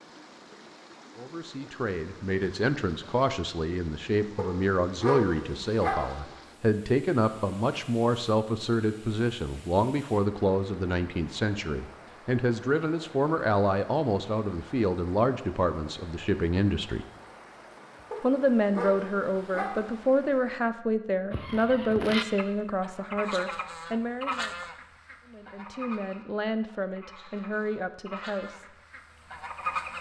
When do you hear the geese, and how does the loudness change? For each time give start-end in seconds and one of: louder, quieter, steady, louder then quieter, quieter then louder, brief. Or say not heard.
21.3-29.9 quieter then louder.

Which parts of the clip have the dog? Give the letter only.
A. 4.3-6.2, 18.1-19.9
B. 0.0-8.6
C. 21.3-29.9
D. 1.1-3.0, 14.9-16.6
A.